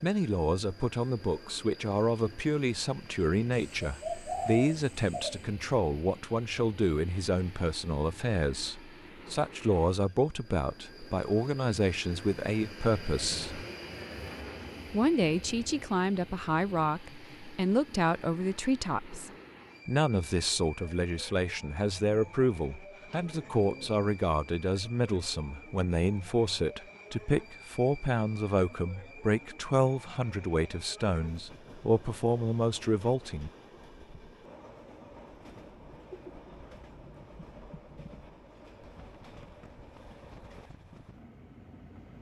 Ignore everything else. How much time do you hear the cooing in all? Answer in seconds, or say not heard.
6 s.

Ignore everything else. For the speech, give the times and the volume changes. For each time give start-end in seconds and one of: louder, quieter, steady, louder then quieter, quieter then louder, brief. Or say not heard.
0.0-13.7 steady
14.9-33.5 steady.